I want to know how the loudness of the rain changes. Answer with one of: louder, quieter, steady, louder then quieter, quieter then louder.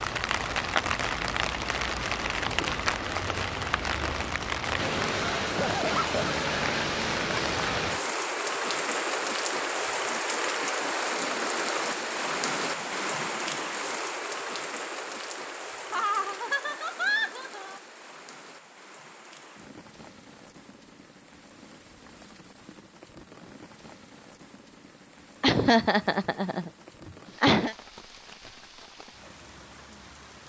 quieter.